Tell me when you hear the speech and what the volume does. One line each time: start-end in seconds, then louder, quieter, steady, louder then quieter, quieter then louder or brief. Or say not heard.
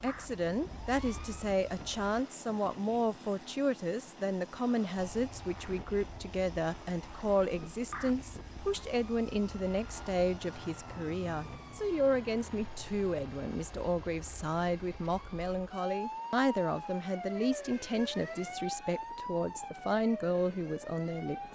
0.0-21.5 steady.